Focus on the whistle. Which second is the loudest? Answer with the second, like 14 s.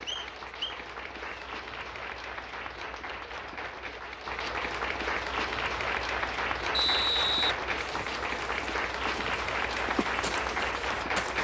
7 s.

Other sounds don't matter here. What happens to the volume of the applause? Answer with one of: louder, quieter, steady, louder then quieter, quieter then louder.
louder.